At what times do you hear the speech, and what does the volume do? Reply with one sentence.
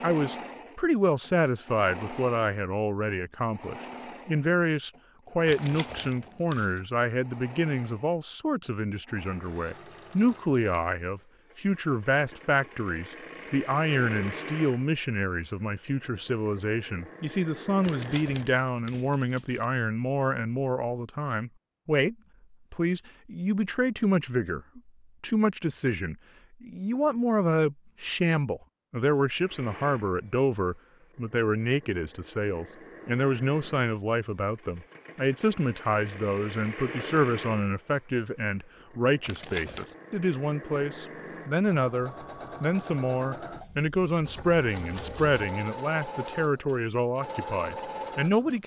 You can hear the speech from 0.0 to 48.6 s, at a steady volume.